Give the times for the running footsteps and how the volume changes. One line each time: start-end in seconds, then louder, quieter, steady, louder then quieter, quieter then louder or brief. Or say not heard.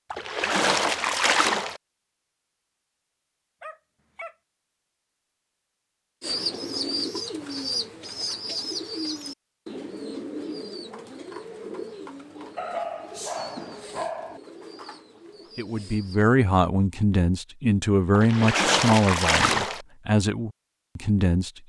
not heard.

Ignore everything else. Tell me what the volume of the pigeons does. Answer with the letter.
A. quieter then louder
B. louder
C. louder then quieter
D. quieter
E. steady
D.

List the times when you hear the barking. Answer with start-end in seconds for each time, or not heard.
3.6-4.3, 12.6-14.4.